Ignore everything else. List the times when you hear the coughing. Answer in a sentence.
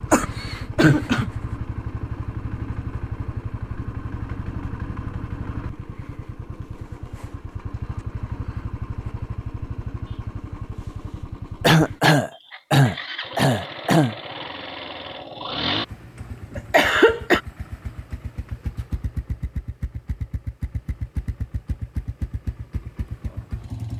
You can hear the coughing from 0.1 to 1.3 s, from 11.6 to 14.2 s and from 16.6 to 17.4 s.